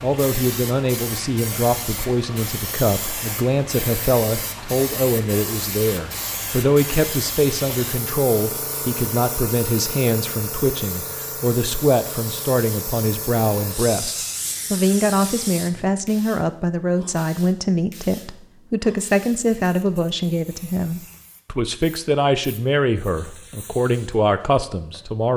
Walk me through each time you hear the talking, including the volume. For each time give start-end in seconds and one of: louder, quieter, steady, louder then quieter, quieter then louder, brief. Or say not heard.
0.0-25.3 steady.